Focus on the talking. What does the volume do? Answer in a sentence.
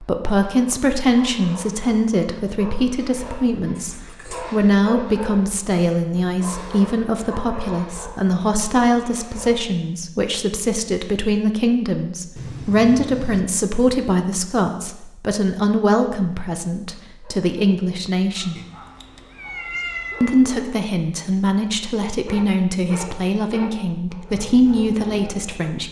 The volume of the talking stays about the same.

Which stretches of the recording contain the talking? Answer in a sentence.
You can hear the talking from 0.0 to 18.6 s and from 20.2 to 25.8 s.